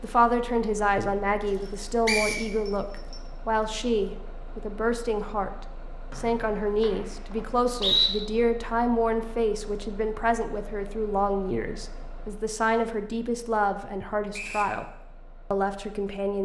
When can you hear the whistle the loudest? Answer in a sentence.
The volume of the whistle peaks at 8 seconds.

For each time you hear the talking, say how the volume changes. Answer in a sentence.
You can hear the talking from 0.0 to 14.8 s, at a steady volume; and briefly from 15.5 to 16.4 s.